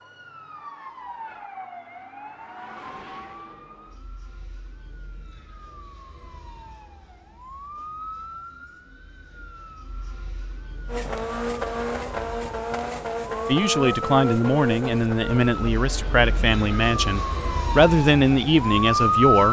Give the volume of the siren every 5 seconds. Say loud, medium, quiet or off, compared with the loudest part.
quiet, quiet, quiet, loud.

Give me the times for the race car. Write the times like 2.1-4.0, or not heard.
10.8-19.2.